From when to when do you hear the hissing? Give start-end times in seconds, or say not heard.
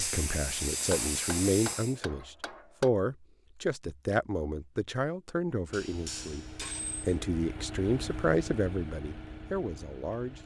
0.0-2.0.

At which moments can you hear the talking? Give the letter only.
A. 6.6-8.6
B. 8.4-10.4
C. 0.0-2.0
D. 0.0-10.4
D.